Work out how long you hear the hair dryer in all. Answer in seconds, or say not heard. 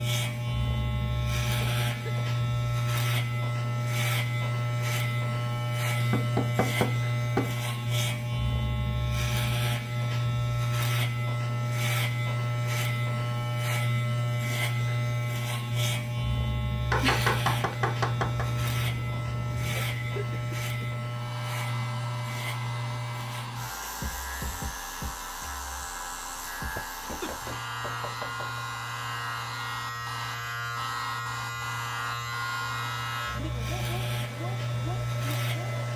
15 s.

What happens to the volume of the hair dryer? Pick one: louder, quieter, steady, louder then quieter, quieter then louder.
steady.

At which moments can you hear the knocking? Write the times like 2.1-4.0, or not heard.
6.0-7.5, 16.9-18.5, 27.1-28.6.